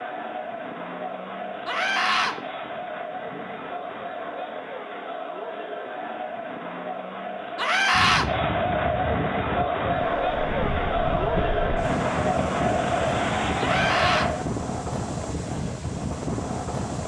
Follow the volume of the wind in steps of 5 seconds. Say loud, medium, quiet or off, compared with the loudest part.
off, loud, loud, loud.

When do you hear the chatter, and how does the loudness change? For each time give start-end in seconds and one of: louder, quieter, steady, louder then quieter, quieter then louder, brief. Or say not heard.
0.0-14.5 louder.